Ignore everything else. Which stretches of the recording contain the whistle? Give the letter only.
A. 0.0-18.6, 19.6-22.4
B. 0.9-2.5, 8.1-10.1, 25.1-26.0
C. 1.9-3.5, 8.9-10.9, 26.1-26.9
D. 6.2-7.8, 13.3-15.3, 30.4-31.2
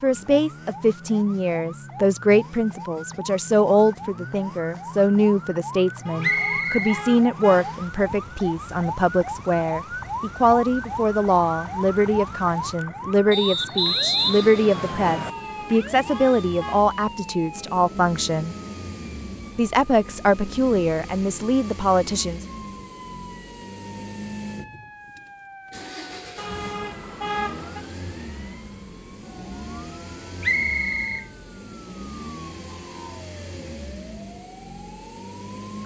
D.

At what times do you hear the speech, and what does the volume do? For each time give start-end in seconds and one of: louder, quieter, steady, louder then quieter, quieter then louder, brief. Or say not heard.
0.0-18.6 steady
19.6-22.4 brief.